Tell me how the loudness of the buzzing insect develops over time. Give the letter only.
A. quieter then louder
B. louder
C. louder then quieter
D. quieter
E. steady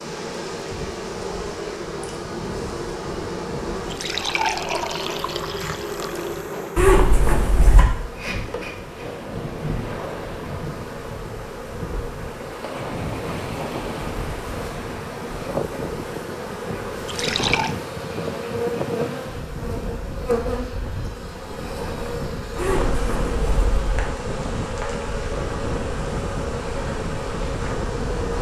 E.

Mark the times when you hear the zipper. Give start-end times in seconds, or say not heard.
6.8-7.8, 22.6-24.1.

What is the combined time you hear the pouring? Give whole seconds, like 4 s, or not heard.
3 s.